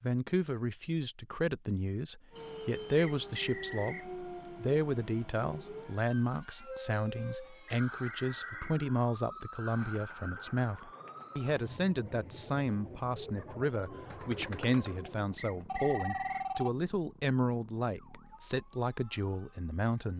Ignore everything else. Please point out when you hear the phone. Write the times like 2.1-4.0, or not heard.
2.4-3.3, 7.7-9.4, 15.7-16.7.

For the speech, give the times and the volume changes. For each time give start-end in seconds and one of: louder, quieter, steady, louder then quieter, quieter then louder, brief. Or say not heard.
0.0-20.1 steady.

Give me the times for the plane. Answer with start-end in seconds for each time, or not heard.
not heard.